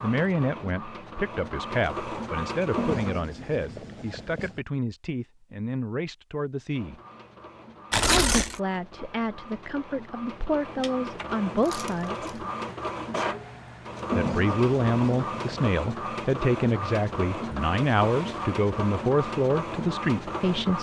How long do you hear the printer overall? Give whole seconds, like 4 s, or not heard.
17 s.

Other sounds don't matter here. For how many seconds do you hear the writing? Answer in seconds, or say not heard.
3 s.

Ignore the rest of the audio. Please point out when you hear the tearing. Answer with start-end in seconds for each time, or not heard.
7.9-8.6, 11.7-12.4.